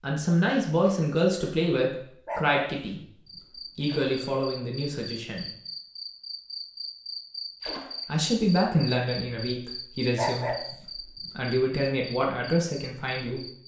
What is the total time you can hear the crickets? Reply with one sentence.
You can hear the crickets for 10 seconds altogether.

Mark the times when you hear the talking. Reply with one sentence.
The talking can be heard from 0.0 to 3.0 s, from 3.8 to 5.5 s and from 8.1 to 13.4 s.